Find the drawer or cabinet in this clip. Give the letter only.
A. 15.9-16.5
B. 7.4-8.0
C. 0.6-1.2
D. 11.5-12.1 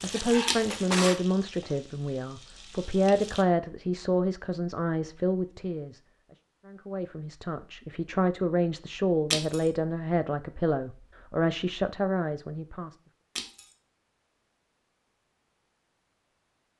C.